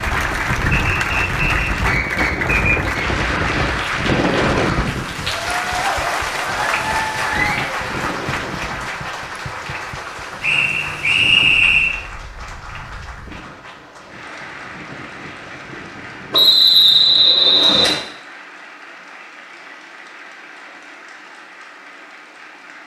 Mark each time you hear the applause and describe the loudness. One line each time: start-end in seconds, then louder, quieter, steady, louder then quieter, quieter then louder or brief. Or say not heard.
0.0-22.8 quieter.